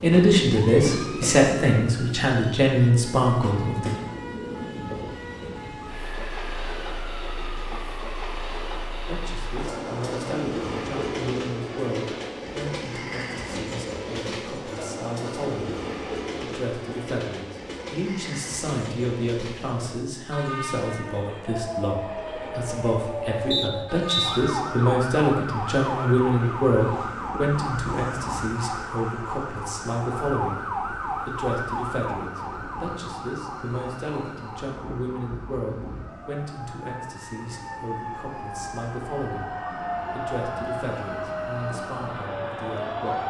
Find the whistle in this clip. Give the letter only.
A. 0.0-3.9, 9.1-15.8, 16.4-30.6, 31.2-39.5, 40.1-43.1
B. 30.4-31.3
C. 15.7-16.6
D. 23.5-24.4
D.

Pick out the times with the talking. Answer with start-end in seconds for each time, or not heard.
0.0-3.9, 9.1-15.8, 16.4-30.6, 31.2-39.5, 40.1-43.1.